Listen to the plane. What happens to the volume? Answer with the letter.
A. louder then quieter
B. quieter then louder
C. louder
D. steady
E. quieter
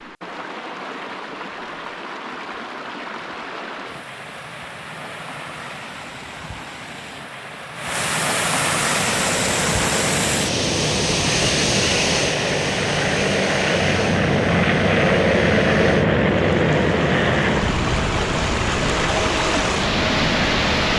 A.